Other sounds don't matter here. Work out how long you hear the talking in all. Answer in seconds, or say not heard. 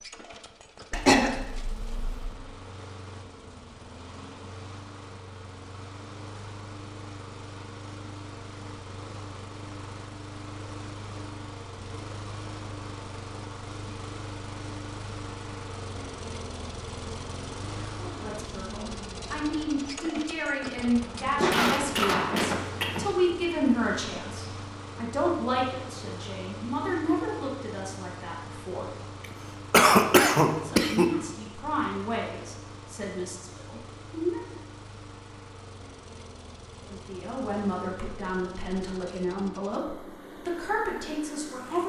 20 s.